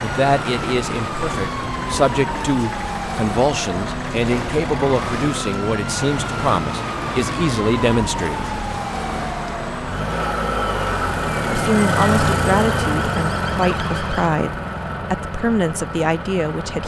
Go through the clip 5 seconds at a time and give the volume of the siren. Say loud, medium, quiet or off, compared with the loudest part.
loud, loud, medium, off.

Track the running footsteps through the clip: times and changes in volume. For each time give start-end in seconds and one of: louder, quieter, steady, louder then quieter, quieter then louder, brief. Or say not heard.
not heard.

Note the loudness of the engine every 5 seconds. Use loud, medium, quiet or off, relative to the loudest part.
medium, medium, loud, medium.